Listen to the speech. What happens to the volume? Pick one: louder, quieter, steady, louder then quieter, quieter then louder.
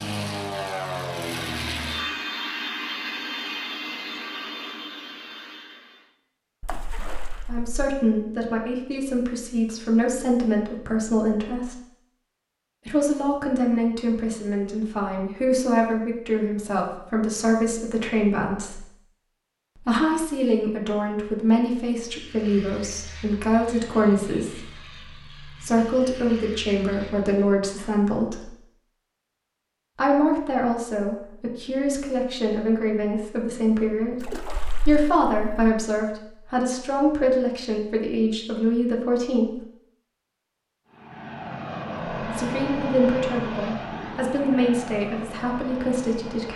steady.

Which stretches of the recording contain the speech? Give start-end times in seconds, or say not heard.
7.5-11.8, 12.8-18.9, 19.8-28.5, 29.9-39.5, 42.2-46.5.